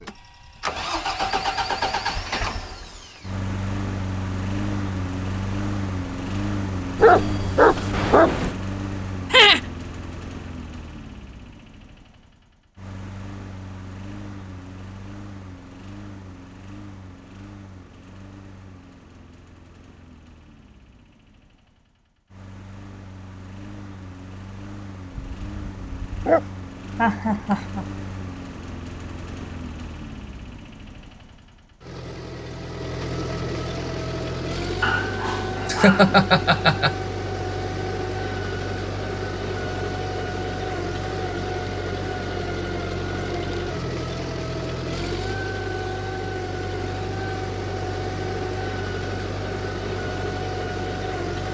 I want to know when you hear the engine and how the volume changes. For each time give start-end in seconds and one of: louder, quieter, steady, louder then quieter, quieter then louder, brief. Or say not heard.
0.0-51.4 quieter then louder.